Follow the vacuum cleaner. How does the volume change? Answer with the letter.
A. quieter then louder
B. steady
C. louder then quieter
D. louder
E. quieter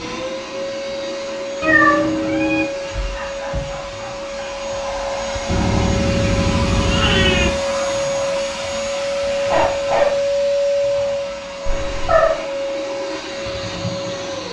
C.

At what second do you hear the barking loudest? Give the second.
10 s.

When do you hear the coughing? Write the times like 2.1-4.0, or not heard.
not heard.